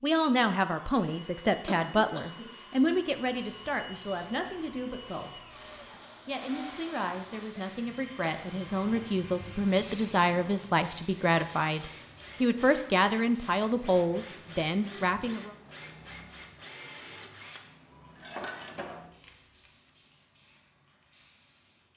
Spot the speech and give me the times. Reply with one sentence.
The speech can be heard from 0.0 to 5.3 s and from 6.2 to 15.6 s.